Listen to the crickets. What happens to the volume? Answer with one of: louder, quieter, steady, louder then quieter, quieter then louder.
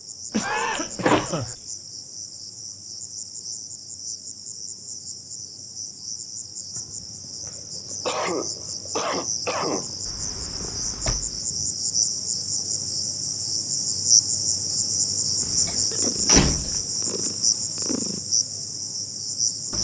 louder.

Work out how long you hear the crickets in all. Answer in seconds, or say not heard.
20 s.